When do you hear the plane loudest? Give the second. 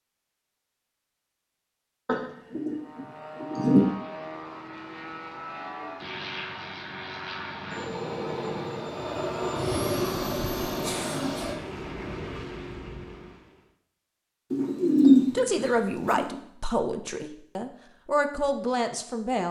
10 s.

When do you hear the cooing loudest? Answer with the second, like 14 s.
15 s.